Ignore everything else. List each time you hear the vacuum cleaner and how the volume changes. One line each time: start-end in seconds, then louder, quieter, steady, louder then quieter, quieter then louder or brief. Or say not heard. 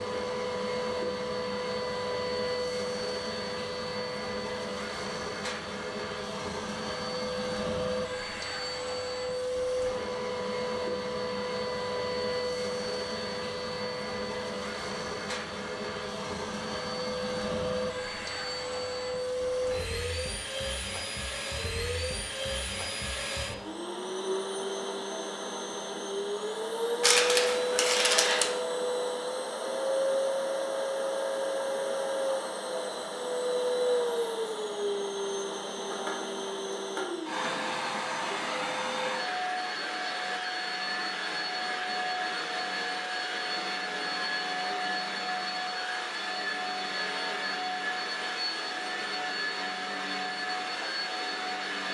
0.0-51.8 steady.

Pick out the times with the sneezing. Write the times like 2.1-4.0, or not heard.
27.0-28.5.